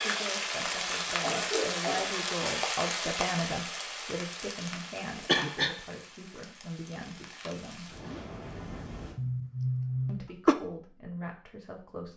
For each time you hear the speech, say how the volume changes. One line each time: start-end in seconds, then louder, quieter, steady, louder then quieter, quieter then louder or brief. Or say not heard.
0.0-8.0 louder then quieter
10.1-12.1 brief.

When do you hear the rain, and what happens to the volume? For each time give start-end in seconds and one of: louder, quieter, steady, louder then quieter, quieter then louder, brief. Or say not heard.
0.0-9.2 quieter then louder.